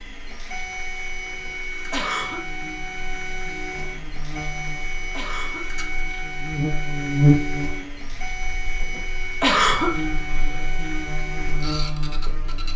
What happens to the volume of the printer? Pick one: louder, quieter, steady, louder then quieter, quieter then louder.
steady.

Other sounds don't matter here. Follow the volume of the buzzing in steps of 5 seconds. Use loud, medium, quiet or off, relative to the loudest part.
quiet, loud, medium.